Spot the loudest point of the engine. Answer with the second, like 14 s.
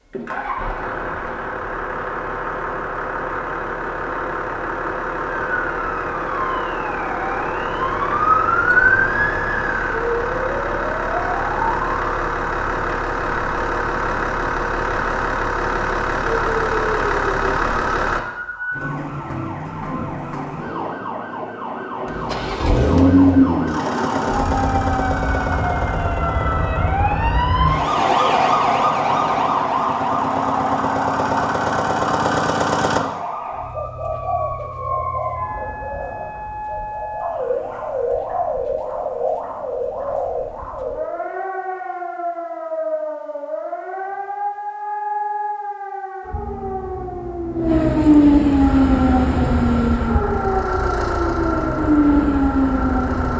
23 s.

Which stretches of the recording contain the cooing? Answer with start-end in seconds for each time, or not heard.
33.6-41.0.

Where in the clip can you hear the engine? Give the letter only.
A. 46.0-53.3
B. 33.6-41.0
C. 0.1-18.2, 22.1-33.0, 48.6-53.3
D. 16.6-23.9
C.